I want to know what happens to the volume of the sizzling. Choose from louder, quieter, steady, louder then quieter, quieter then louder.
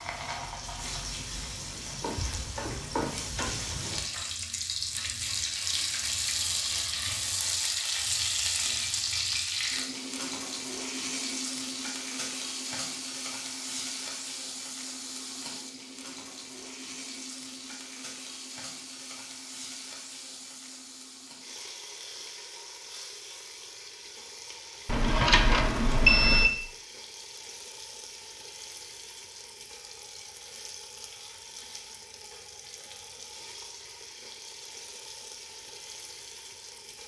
quieter.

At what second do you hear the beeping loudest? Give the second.
26 s.